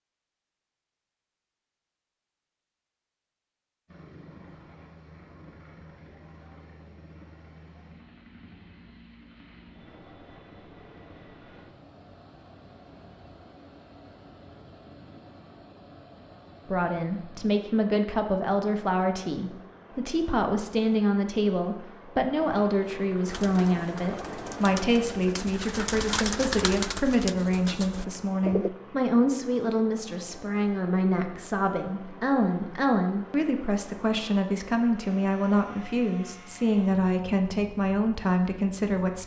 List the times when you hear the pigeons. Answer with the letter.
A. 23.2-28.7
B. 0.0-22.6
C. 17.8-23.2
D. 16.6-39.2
A.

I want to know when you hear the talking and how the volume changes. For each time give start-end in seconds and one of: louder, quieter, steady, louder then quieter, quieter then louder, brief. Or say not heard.
16.6-39.2 steady.